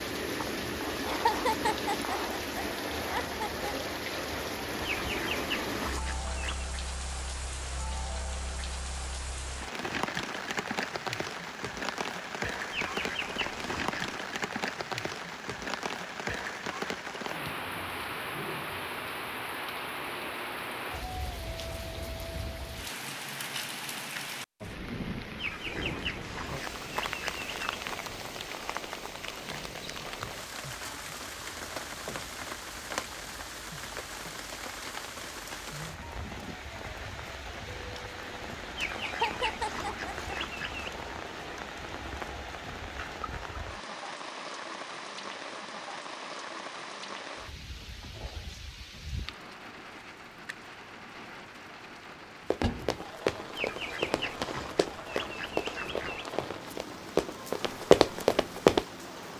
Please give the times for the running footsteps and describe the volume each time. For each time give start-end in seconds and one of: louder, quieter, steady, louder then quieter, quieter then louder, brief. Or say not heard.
52.5-58.9 louder.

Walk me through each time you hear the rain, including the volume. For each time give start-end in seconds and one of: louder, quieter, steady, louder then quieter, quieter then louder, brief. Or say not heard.
0.0-59.3 quieter.